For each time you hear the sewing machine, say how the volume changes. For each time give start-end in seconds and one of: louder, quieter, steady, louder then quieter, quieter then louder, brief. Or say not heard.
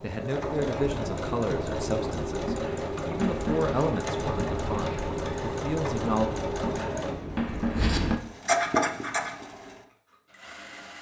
0.0-10.9 quieter.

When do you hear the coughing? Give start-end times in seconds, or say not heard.
not heard.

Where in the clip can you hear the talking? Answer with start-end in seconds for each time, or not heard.
0.0-6.3.